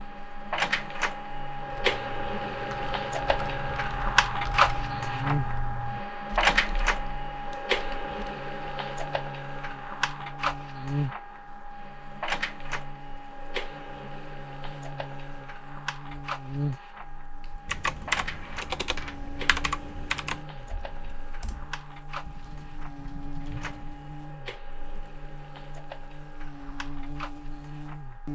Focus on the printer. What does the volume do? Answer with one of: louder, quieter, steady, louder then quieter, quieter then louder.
quieter.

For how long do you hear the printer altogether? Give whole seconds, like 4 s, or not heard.
28 s.